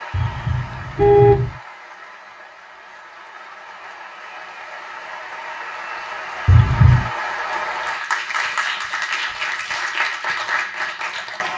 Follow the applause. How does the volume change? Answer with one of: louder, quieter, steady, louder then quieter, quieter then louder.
louder.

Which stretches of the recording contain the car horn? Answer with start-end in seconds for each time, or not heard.
0.1-1.5, 6.5-7.1.